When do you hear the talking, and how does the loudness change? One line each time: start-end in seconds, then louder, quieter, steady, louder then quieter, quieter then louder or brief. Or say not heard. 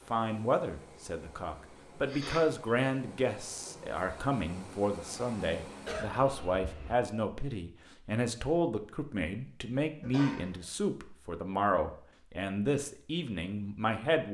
0.1-14.2 steady.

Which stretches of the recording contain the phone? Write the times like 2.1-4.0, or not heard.
not heard.